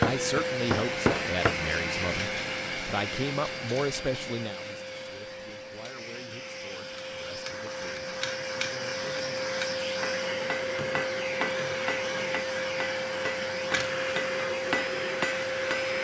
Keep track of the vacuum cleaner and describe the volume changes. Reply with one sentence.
The loudness of the vacuum cleaner goes down, then up.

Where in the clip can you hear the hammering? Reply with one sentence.
The hammering can be heard from 0.0 to 1.6 s and from 9.9 to 15.9 s.